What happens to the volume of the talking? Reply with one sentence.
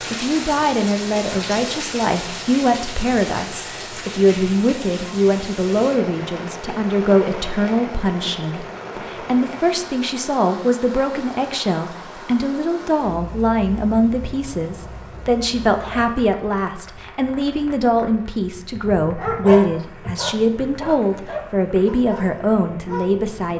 The loudness of the talking stays about the same.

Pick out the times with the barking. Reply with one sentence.
You can hear the barking from 19.1 to 23.5 s.